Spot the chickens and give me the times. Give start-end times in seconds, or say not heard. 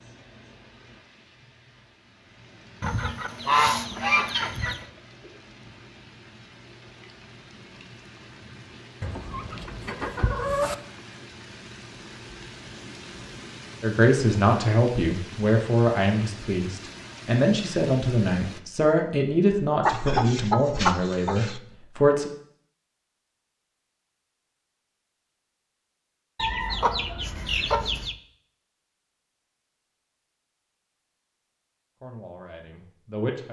2.8-4.8, 9.0-10.8, 19.9-21.6, 26.4-28.1.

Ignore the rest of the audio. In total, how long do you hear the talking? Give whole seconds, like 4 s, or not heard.
10 s.